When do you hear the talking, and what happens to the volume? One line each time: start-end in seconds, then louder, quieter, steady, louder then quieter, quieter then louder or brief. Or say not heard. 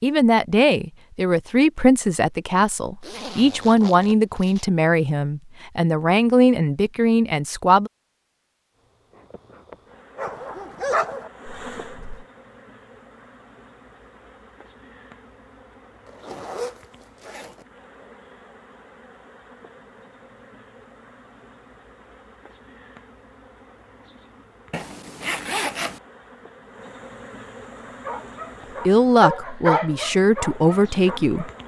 0.0-7.9 steady
28.9-31.5 brief.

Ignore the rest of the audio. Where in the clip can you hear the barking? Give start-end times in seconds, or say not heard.
10.2-12.2, 27.9-31.6.